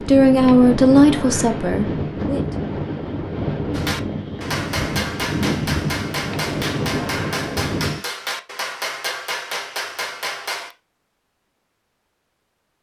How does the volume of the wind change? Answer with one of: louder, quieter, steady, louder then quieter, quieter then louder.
steady.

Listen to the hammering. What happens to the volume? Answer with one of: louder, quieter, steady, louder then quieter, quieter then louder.
steady.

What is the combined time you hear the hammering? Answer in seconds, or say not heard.
7 s.